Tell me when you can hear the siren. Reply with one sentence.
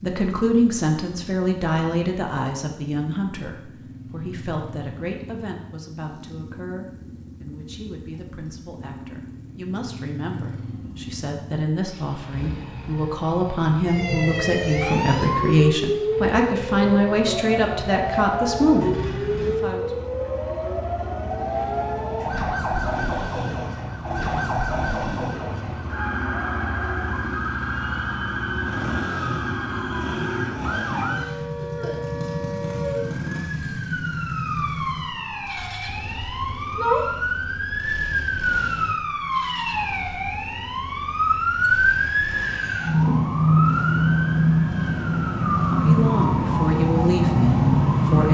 You can hear the siren from 13.8 to 48.2 s.